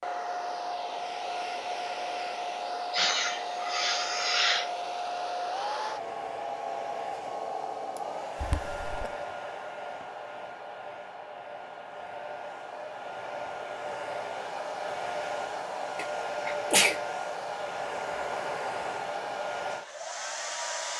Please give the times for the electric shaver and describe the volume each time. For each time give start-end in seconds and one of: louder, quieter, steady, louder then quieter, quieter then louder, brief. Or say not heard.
not heard.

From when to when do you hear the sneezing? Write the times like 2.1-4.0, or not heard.
2.8-4.7, 8.4-9.1, 15.9-16.9.